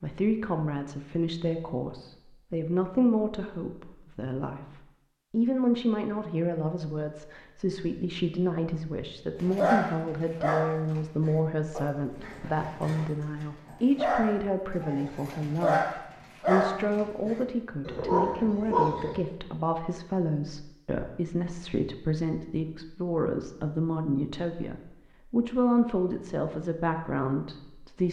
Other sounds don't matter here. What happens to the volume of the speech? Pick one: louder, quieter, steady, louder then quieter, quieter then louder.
steady.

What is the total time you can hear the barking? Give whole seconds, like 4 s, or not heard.
10 s.